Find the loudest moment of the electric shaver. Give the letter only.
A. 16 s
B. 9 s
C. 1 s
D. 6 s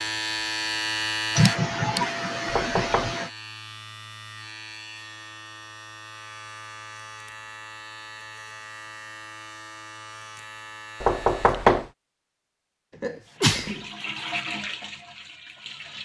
C.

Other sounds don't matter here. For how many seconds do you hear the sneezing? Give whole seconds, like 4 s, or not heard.
3 s.